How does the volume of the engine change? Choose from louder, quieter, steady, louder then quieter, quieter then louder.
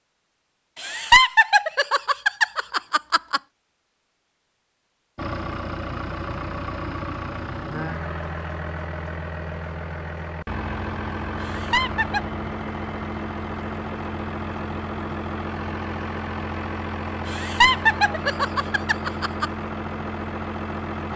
steady.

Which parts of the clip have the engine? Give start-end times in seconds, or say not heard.
5.2-21.1.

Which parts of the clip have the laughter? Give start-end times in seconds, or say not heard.
0.8-3.4, 11.4-12.3, 17.2-19.5.